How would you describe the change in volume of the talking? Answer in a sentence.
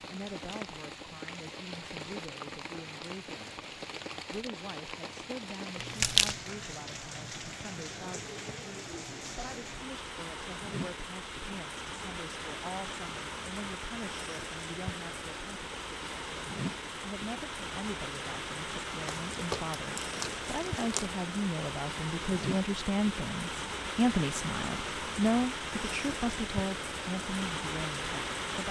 The loudness of the talking goes up.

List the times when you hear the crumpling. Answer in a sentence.
You can hear the crumpling from 5.8 to 6.3 s and from 19.1 to 21.1 s.